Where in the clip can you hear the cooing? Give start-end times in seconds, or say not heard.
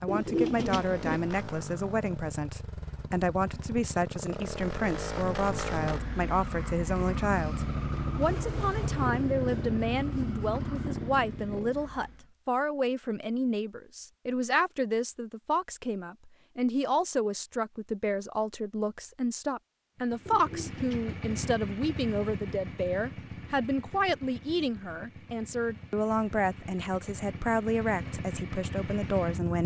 0.1-1.2, 20.2-21.1.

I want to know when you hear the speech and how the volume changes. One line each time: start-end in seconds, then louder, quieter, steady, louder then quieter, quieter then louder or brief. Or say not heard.
0.0-29.6 steady.